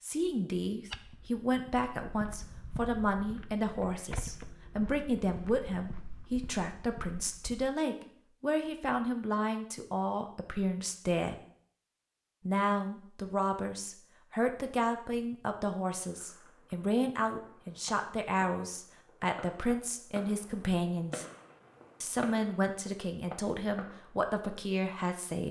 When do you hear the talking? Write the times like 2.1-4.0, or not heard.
0.0-11.3, 12.4-21.2, 22.0-25.4.